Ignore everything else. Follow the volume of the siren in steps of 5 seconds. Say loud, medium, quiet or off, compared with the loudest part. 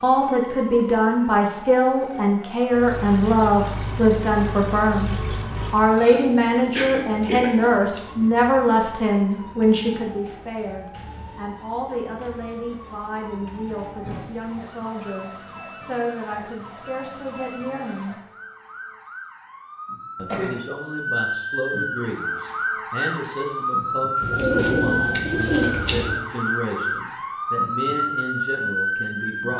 quiet, quiet, quiet, quiet, loud, loud.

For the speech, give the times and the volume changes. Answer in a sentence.
You can hear the speech from 0.0 to 18.2 s, getting quieter; and from 20.1 to 29.5 s, at a steady volume.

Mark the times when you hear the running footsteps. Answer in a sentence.
You can't hear the running footsteps here.